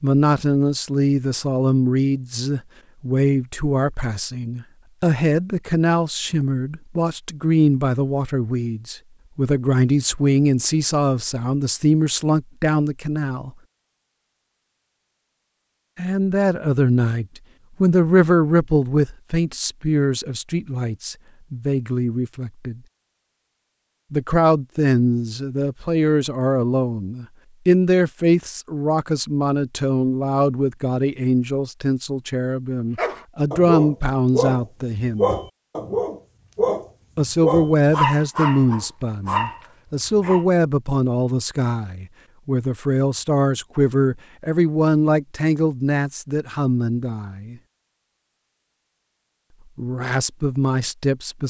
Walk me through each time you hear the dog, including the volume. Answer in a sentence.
The dog can be heard from 33.0 to 40.5 s, at a steady volume.